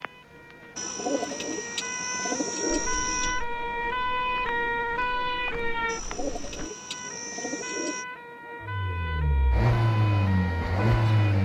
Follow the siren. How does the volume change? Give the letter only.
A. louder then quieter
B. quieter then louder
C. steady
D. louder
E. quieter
A.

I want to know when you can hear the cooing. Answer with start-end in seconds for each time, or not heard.
0.8-3.5, 5.8-8.1.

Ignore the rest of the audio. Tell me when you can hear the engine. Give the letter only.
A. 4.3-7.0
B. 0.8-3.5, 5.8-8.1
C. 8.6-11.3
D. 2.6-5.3
C.